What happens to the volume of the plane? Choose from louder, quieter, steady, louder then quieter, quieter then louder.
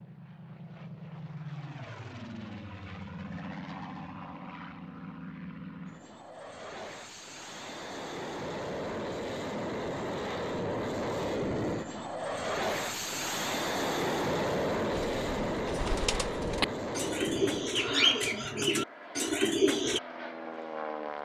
louder then quieter.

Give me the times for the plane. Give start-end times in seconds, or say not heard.
0.0-21.1.